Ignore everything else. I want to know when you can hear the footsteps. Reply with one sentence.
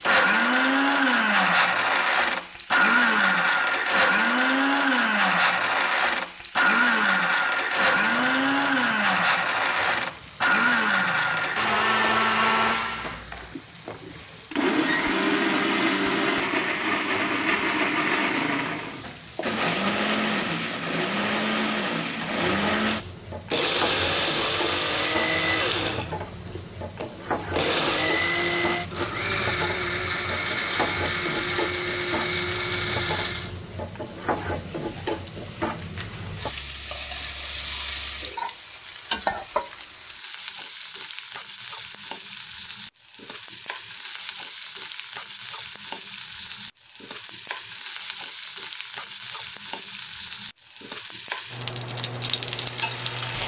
You can't hear the footsteps here.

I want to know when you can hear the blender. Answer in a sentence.
You can hear the blender from 0.0 to 33.5 s.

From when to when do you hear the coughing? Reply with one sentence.
The coughing can't be heard in this clip.